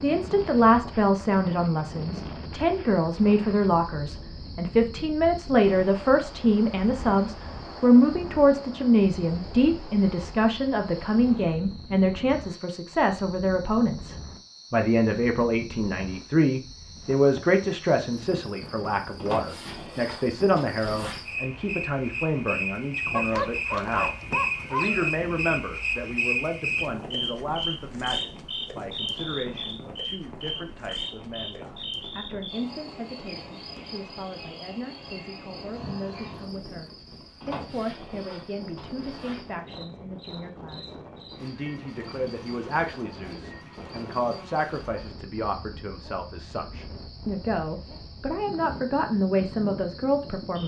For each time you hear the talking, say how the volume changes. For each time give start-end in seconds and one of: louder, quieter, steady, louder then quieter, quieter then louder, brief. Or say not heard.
0.0-50.6 quieter then louder.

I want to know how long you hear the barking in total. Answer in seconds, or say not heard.
2 s.